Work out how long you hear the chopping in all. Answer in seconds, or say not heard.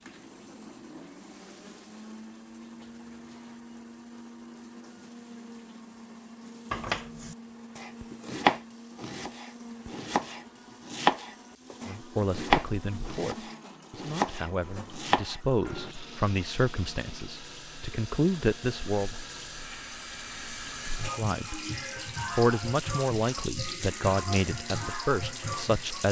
9 s.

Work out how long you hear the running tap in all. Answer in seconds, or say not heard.
26 s.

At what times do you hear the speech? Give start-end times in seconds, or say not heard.
11.8-19.1, 21.1-21.6, 22.3-26.0.